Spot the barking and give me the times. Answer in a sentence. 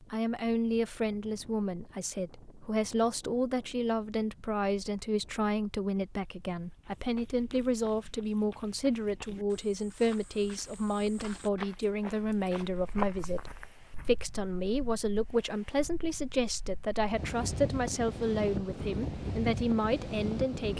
The barking can't be heard in this clip.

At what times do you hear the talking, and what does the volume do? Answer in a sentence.
You can hear the talking from 0.0 to 20.7 s, at a steady volume.